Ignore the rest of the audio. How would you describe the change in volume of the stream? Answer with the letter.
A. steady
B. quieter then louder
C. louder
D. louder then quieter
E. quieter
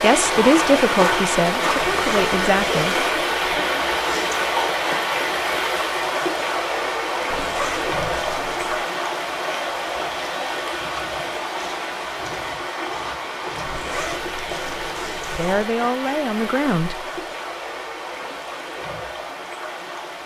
E.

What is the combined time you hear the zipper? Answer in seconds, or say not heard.
5 s.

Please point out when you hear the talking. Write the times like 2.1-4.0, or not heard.
0.0-3.6, 15.3-16.9.